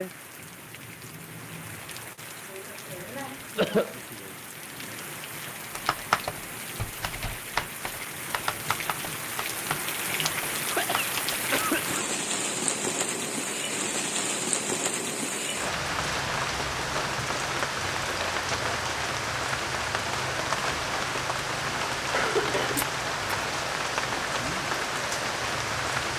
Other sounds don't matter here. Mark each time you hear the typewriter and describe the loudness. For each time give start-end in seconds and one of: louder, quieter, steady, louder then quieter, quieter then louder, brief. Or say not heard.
5.7-11.4 quieter.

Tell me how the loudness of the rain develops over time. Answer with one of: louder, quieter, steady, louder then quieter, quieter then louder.
louder.